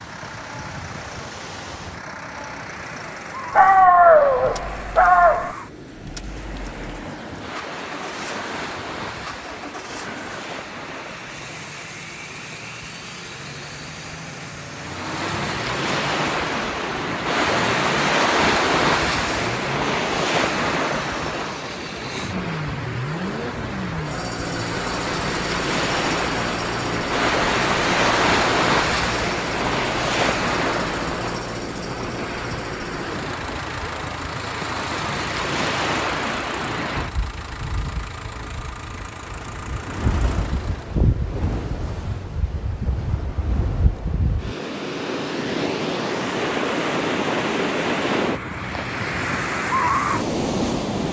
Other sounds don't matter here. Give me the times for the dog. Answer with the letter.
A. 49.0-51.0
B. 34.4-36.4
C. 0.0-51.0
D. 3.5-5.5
D.